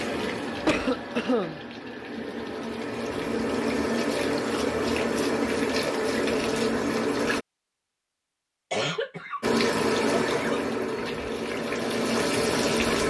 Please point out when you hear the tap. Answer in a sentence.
You can hear the tap from 0.0 to 7.5 s and from 9.4 to 13.0 s.